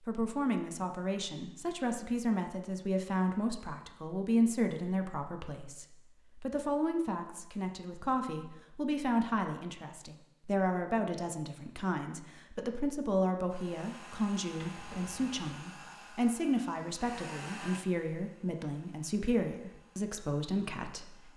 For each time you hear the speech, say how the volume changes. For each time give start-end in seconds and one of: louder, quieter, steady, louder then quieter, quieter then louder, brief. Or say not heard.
0.1-21.3 steady.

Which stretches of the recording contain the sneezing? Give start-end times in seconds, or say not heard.
not heard.